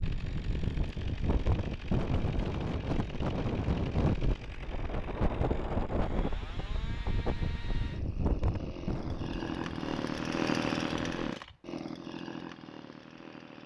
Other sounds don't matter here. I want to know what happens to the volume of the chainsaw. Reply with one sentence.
The volume of the chainsaw goes up.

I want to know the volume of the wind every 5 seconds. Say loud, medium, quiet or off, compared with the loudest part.
loud, loud, off.